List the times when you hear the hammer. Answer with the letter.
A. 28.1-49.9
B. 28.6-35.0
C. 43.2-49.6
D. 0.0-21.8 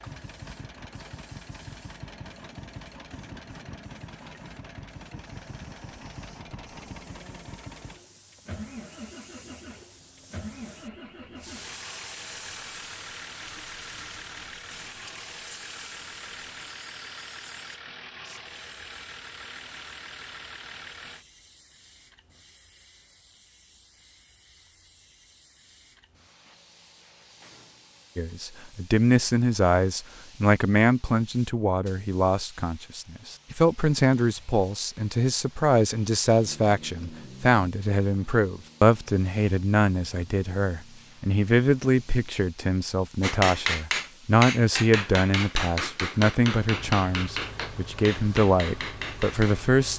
C.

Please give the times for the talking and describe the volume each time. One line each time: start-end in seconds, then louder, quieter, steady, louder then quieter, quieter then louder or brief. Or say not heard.
28.1-49.9 steady.